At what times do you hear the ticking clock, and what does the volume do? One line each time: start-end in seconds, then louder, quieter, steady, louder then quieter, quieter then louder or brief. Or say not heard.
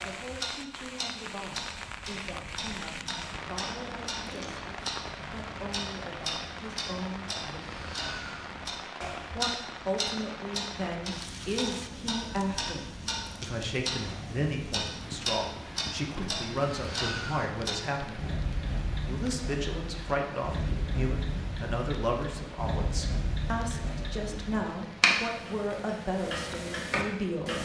0.0-27.6 louder.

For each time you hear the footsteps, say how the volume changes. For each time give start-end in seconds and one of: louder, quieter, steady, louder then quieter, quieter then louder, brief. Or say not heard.
not heard.